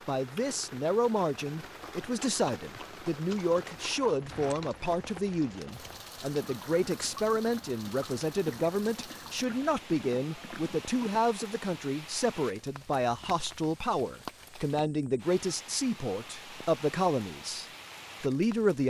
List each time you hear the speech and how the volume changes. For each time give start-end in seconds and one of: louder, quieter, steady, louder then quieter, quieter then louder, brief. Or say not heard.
0.1-18.8 steady.